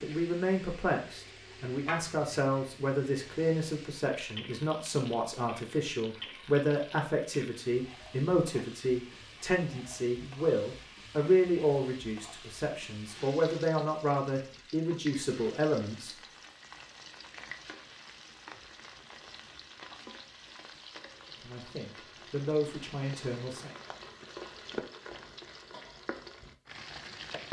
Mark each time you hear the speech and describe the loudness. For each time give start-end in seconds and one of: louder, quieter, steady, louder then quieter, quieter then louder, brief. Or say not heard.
0.0-16.1 steady
21.4-23.7 brief.